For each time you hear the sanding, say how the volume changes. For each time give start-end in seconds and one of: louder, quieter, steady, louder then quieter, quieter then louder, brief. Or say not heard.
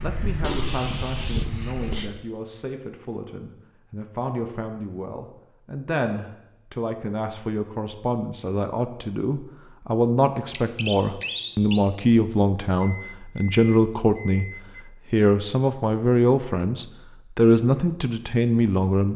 not heard.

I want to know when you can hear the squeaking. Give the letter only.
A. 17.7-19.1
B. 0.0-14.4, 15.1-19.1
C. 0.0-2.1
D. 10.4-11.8
D.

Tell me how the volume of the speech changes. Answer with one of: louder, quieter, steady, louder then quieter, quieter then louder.
louder.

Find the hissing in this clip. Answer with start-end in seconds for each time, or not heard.
0.0-2.1.